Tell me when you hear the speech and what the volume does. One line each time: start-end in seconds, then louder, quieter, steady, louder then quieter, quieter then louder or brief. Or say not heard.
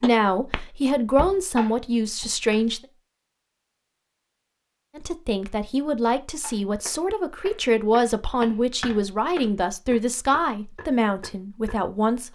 0.0-2.8 brief
5.0-12.3 steady.